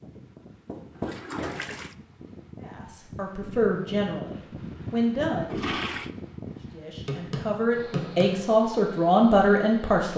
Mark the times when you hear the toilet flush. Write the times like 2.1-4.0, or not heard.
0.9-1.9, 5.5-6.1.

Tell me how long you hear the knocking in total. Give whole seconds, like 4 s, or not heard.
2 s.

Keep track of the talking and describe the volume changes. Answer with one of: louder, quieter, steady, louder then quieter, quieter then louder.
louder.